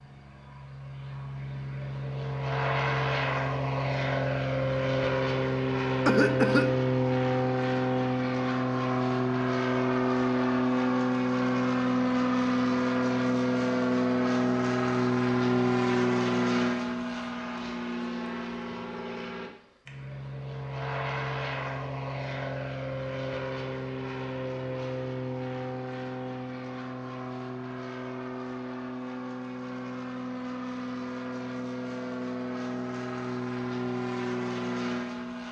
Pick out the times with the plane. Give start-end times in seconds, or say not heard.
0.0-35.4.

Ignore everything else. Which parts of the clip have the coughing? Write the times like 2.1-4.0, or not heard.
6.0-6.8.